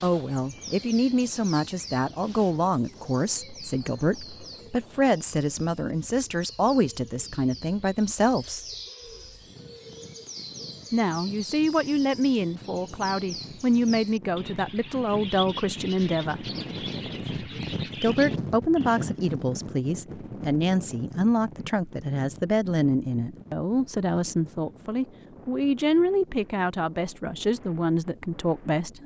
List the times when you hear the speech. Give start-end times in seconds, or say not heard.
0.0-8.7, 10.9-16.4, 18.0-29.0.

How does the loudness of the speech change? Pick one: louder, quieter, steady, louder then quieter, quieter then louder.
steady.